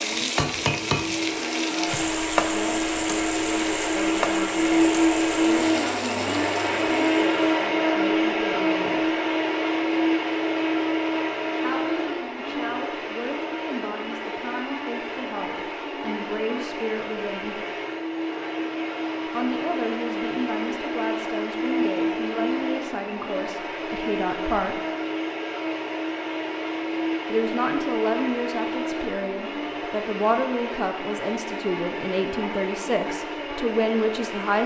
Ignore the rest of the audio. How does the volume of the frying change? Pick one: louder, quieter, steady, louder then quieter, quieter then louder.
quieter.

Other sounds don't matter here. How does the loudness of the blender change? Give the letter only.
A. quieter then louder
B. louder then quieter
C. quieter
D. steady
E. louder
C.